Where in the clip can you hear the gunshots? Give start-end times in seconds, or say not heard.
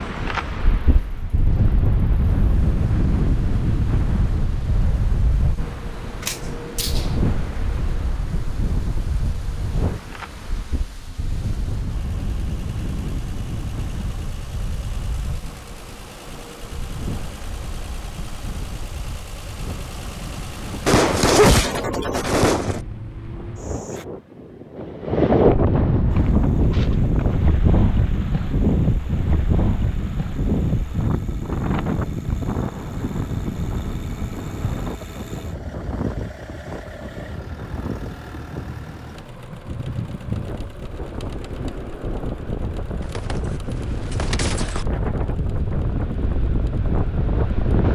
6.2-7.2, 20.9-22.8, 43.0-44.9.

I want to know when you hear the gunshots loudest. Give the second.
21 s.